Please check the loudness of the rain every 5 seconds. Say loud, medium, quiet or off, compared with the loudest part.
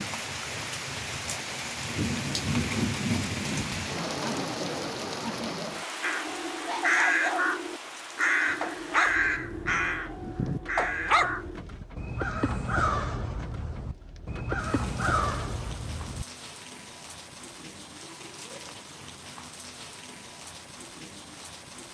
loud, medium, quiet, quiet, quiet.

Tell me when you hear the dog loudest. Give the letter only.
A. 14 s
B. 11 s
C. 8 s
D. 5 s
B.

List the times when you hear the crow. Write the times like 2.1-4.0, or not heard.
6.0-16.2.